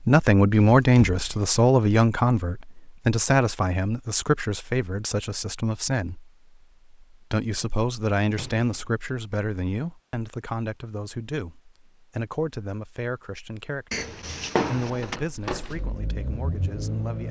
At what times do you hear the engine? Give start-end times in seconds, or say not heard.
14.8-17.2.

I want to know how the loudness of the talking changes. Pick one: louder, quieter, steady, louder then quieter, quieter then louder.
quieter.